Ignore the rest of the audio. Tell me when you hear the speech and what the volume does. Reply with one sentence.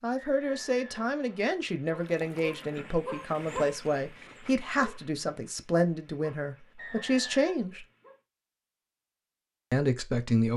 The speech can be heard from 0.0 to 7.8 s, at a steady volume; and briefly from 9.7 to 10.5 s.